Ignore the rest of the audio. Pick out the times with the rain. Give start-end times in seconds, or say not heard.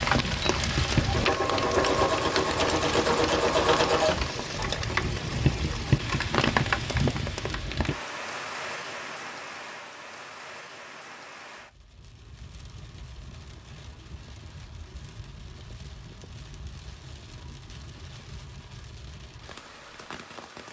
0.0-20.6.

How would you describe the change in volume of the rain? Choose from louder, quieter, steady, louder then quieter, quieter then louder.
quieter.